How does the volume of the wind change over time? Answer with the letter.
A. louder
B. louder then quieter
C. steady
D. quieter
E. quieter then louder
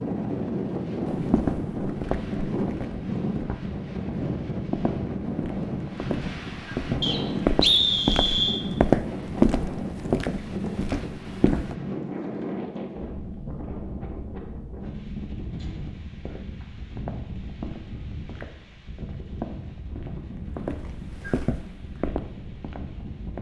D.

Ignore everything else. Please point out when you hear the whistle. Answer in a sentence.
The whistle can be heard from 7.0 to 8.6 s.